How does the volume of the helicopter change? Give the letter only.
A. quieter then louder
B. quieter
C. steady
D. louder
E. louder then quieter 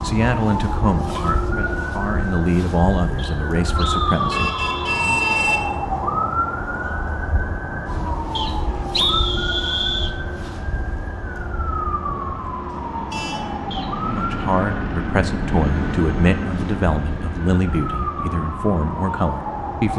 E.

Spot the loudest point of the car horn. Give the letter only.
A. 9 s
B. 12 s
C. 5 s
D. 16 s
C.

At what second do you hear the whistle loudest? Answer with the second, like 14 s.
9 s.